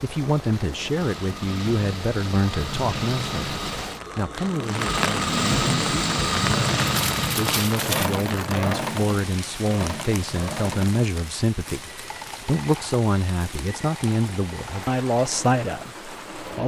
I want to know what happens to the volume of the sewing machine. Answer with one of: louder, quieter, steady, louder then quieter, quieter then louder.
louder then quieter.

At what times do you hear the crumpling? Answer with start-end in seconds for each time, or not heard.
6.8-8.4.